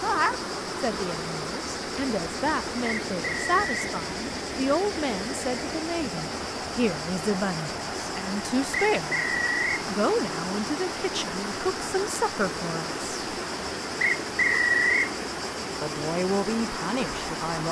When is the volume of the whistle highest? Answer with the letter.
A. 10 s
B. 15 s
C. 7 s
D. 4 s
B.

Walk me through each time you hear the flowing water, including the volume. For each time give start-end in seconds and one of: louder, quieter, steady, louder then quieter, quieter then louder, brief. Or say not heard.
0.0-17.6 steady.